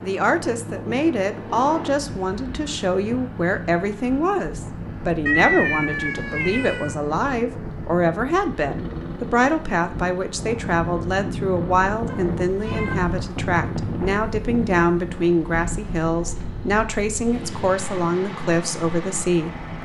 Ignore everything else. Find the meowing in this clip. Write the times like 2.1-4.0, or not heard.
5.2-7.0, 12.1-13.1.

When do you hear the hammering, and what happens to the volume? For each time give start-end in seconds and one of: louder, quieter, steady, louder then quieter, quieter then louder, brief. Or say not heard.
not heard.